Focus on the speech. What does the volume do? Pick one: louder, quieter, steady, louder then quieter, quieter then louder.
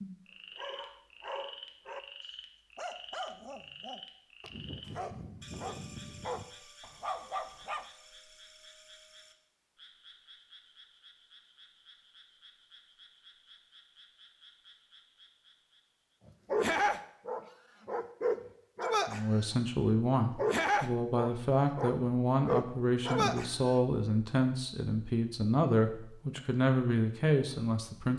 steady.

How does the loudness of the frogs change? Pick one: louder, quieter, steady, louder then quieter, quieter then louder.
quieter.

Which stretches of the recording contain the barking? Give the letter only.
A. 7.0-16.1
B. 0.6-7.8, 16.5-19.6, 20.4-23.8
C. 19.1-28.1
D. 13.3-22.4
B.